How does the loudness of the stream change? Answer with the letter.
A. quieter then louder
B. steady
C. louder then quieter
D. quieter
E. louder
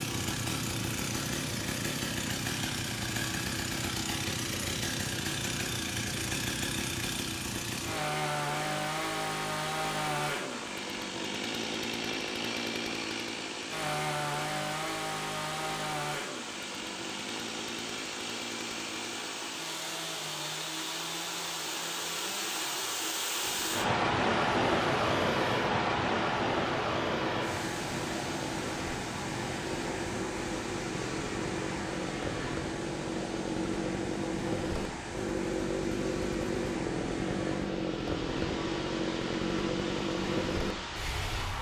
C.